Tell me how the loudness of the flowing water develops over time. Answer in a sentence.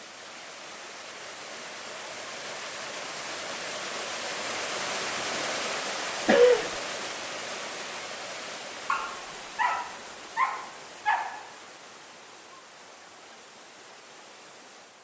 The volume of the flowing water goes up, then down.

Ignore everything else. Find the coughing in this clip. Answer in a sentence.
You can hear the coughing from 6.2 to 6.7 s.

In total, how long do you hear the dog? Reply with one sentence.
You can hear the dog for 3 seconds altogether.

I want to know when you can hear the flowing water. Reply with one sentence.
You can hear the flowing water from 0.0 to 14.9 s.